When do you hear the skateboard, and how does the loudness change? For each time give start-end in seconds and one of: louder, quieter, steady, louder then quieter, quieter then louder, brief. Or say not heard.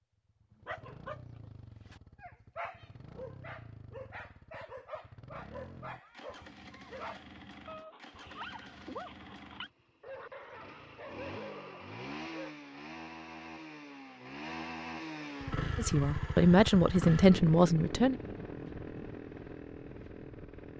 not heard.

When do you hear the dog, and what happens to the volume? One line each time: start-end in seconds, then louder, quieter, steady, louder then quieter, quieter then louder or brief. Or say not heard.
0.6-12.5 steady.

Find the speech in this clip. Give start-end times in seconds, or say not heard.
15.8-18.1.